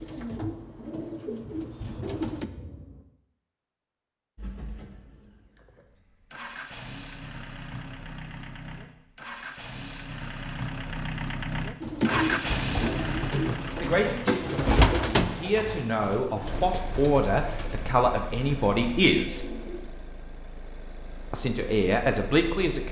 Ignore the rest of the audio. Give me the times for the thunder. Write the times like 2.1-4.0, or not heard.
1.4-3.0.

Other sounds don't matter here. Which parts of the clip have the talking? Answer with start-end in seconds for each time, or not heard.
13.8-19.4, 21.3-22.8.